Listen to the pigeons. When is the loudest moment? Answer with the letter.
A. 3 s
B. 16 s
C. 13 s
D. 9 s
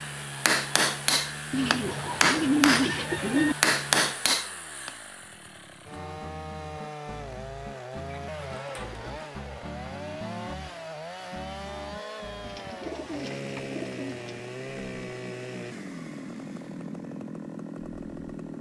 A.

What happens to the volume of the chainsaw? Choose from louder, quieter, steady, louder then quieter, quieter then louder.
steady.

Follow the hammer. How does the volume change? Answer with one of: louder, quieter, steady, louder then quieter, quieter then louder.
quieter then louder.